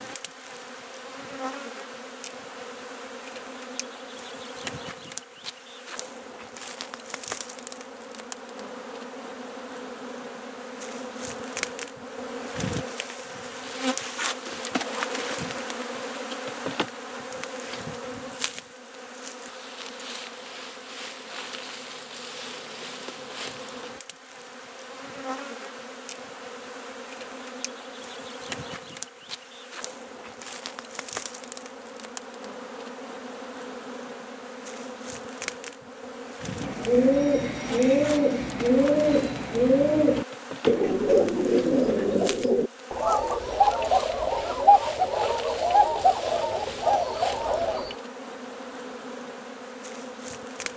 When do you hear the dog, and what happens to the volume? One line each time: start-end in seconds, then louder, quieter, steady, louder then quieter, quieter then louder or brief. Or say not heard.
not heard.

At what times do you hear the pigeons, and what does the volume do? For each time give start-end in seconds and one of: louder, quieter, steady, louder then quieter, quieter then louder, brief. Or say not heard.
36.5-48.0 steady.